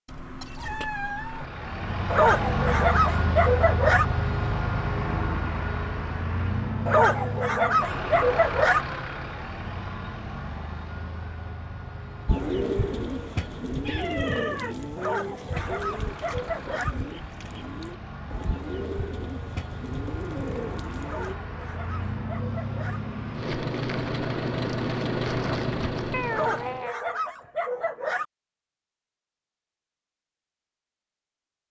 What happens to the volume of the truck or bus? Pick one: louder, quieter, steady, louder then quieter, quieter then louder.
quieter then louder.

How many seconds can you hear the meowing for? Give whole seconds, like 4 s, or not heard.
3 s.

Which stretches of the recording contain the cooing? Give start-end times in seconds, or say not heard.
12.2-21.4.